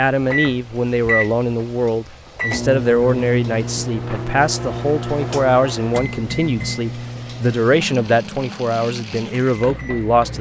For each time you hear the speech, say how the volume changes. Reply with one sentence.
You can hear the speech from 0.0 to 10.3 s, at a steady volume.